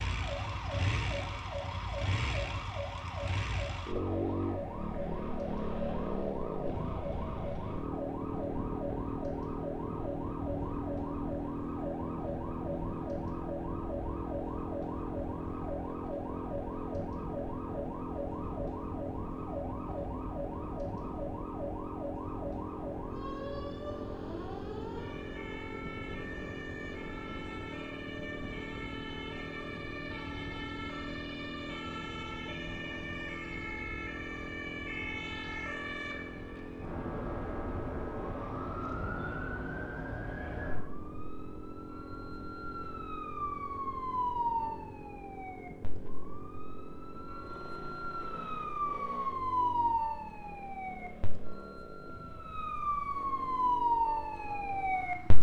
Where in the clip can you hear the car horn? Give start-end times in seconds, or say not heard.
not heard.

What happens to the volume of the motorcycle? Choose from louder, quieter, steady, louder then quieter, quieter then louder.
quieter.